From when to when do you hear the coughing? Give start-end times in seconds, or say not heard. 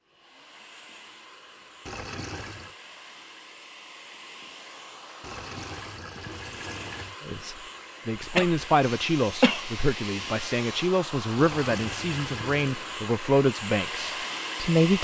8.2-8.7, 9.4-9.9.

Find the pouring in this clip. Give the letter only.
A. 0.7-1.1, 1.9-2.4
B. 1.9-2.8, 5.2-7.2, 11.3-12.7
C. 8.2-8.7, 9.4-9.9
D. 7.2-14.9
B.